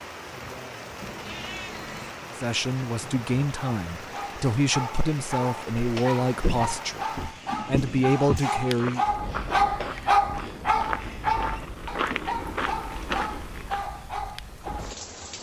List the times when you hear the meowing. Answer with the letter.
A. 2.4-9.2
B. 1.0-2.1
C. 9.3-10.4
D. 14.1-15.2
B.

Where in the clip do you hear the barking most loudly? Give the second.
10 s.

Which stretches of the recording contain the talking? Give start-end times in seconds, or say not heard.
2.4-9.2.